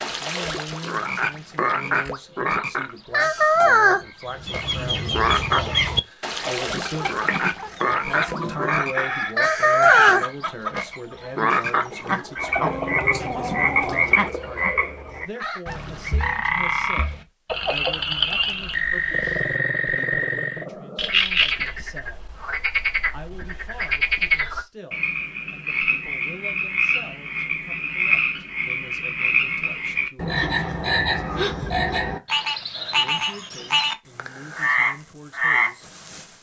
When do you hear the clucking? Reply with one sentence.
The clucking can be heard from 4.2 to 15.8 s.